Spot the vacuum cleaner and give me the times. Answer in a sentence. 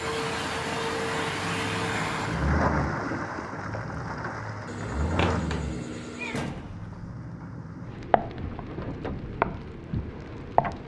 The vacuum cleaner can be heard from 0.0 to 2.5 s.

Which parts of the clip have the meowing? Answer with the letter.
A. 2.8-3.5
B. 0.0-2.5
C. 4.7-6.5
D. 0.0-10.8
C.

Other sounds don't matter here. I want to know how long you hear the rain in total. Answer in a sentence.
The rain can be heard for 11 seconds in total.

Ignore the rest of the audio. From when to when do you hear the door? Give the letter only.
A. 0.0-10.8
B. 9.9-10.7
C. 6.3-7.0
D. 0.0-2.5
C.